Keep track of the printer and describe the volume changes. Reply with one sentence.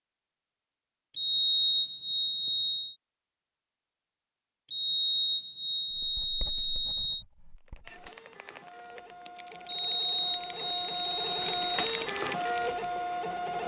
The loudness of the printer goes up.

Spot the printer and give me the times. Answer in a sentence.
You can hear the printer from 7.8 to 13.6 s.